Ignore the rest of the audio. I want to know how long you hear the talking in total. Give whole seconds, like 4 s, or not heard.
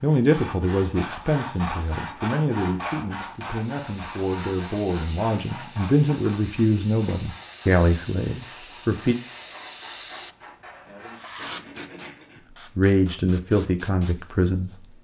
11 s.